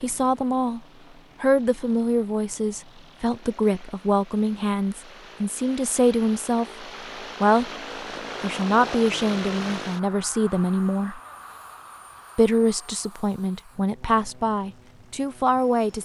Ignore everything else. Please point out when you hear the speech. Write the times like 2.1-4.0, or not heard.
0.0-0.8, 1.4-7.7, 8.4-11.2, 12.3-16.0.